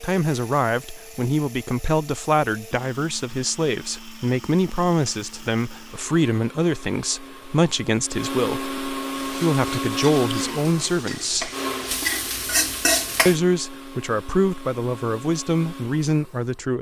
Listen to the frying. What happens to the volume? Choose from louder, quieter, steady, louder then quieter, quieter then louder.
louder.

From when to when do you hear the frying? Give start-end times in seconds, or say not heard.
9.1-13.4.